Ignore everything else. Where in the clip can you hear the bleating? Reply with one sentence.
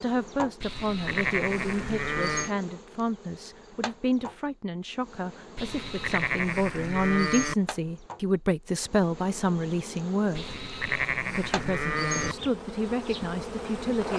The bleating can be heard from 0.6 to 2.5 s, from 5.5 to 7.5 s and from 10.3 to 12.3 s.